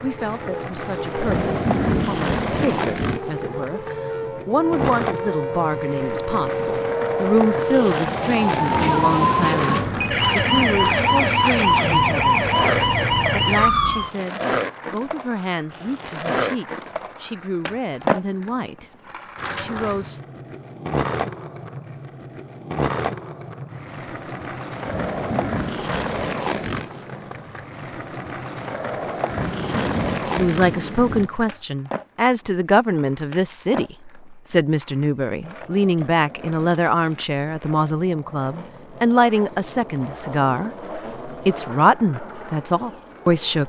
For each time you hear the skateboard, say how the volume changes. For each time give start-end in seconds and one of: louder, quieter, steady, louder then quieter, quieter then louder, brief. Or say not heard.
0.0-43.6 quieter.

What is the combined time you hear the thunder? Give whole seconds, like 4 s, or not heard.
6 s.